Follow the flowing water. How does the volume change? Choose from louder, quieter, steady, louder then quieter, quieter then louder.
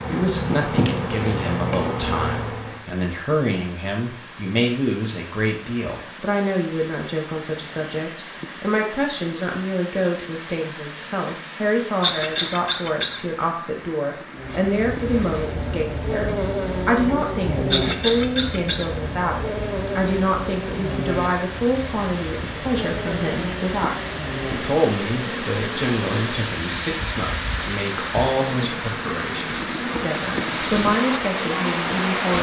louder.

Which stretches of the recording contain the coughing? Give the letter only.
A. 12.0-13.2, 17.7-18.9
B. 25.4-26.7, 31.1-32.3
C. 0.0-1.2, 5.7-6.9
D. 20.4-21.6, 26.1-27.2
A.